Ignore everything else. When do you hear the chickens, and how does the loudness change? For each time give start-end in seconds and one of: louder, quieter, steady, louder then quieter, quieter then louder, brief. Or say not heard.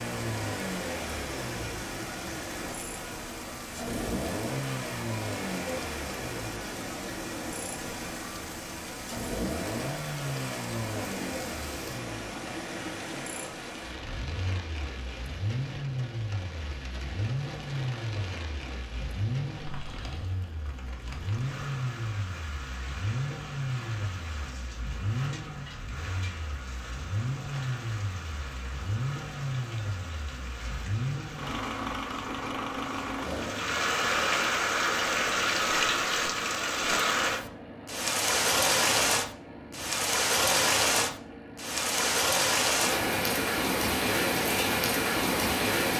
not heard.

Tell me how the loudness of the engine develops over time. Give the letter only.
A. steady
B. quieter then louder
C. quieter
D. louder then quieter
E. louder
C.